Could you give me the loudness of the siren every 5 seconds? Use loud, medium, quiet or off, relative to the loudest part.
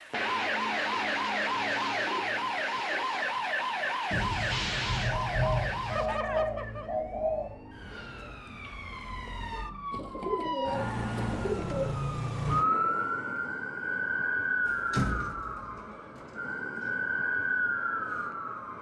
loud, medium, loud, loud.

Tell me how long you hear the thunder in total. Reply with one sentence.
The thunder can be heard for 2 seconds in total.